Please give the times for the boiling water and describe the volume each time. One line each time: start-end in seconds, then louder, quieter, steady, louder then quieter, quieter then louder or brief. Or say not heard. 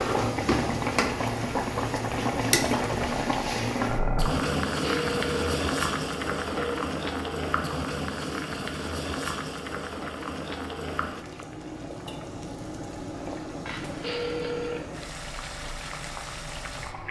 0.0-17.0 quieter.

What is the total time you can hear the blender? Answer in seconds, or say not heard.
not heard.